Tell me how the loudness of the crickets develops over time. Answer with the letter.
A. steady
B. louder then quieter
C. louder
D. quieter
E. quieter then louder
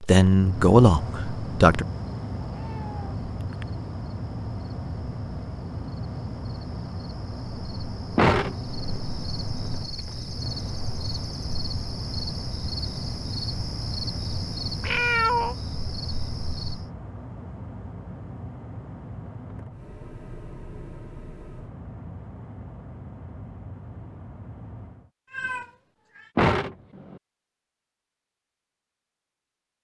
C.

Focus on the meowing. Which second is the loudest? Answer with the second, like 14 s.
15 s.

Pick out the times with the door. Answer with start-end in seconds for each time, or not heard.
8.2-9.0, 26.4-27.2.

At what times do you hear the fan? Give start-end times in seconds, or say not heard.
0.0-25.1.